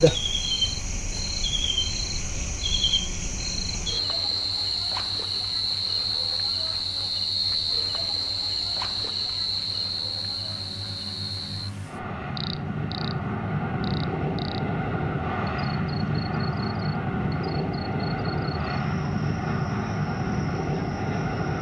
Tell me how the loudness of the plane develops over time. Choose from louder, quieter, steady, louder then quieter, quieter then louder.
louder.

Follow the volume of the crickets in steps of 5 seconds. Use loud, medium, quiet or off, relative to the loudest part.
loud, loud, medium, quiet, quiet.